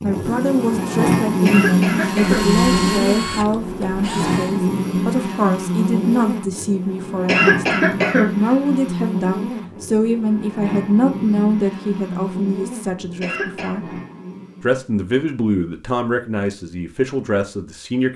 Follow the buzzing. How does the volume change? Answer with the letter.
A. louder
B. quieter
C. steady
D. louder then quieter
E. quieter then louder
B.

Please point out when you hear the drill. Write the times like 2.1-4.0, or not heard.
2.0-4.6.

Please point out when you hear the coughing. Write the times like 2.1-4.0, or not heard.
1.4-2.5, 7.2-8.3, 13.2-13.8.